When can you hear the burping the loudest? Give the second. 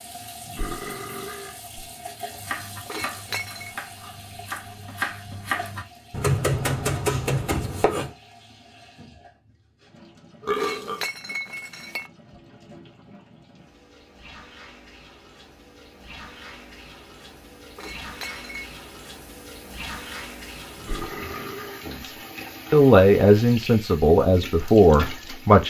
11 s.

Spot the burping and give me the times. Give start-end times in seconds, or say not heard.
0.5-1.6, 10.4-11.1, 20.8-21.9.